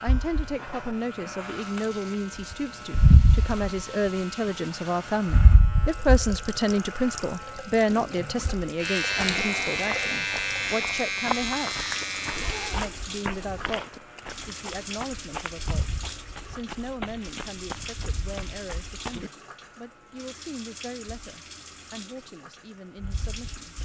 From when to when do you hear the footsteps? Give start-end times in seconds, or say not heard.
9.2-19.3.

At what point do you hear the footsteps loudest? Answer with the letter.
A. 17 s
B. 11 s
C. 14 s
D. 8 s
B.